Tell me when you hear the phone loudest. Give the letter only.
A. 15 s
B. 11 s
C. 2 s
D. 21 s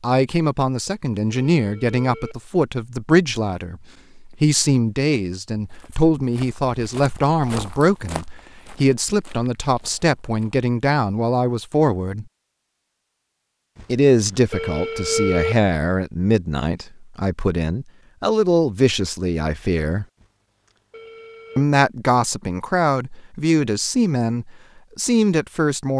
A.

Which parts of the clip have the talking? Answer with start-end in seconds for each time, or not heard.
0.0-12.2, 13.9-20.1, 21.6-25.9.